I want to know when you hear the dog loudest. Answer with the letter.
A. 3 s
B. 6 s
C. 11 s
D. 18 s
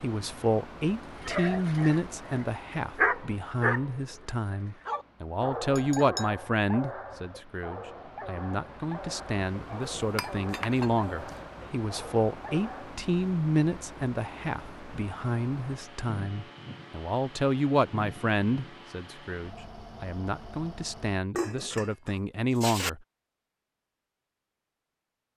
A.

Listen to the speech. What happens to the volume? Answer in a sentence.
The volume of the speech stays about the same.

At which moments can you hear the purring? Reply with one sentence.
You can't hear the purring here.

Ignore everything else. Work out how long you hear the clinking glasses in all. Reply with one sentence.
You can hear the clinking glasses for 4 seconds altogether.